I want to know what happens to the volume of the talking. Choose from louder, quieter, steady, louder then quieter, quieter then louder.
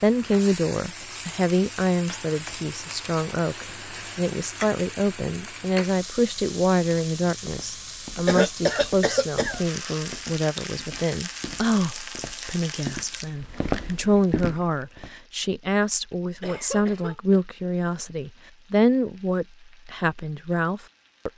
steady.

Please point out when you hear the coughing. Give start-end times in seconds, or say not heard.
3.5-4.2, 8.2-9.6, 16.4-17.4.